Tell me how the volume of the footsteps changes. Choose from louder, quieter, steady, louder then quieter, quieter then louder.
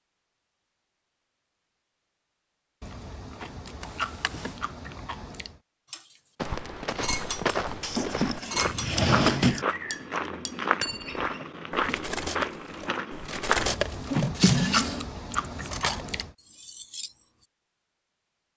steady.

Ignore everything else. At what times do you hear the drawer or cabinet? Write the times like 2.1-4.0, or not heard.
3.8-4.5, 7.8-9.7, 14.1-15.1.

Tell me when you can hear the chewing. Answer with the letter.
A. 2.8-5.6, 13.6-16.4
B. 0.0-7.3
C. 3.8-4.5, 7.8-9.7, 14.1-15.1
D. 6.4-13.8
A.